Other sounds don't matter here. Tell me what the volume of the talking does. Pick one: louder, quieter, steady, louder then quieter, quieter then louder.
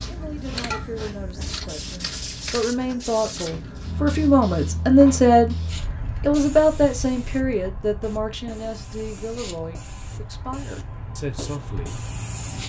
louder then quieter.